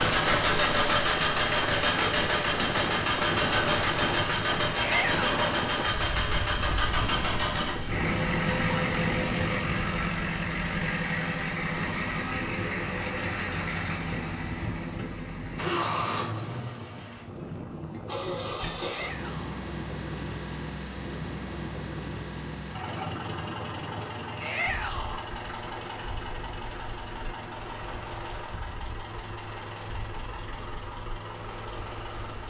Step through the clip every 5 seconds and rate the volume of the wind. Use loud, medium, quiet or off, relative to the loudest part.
loud, loud, medium, medium, medium, quiet, quiet.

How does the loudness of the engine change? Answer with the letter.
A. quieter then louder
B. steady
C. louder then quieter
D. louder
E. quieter
E.